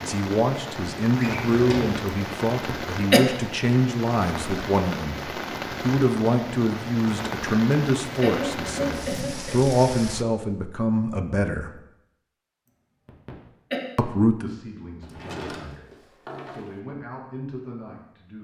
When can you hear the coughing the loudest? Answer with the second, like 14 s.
3 s.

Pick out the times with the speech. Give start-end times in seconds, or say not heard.
0.0-11.8, 13.9-18.3.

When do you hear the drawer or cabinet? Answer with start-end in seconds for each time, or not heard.
1.1-2.0, 8.9-9.4, 15.0-16.8.